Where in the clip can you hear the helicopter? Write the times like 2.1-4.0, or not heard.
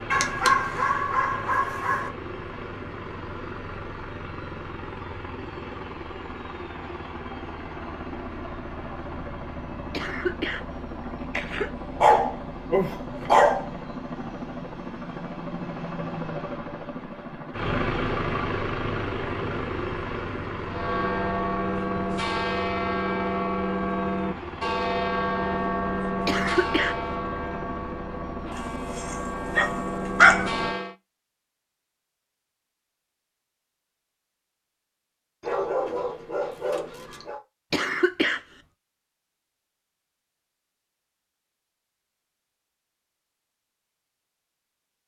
0.0-30.8.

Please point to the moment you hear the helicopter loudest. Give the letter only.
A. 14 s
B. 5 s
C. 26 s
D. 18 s
D.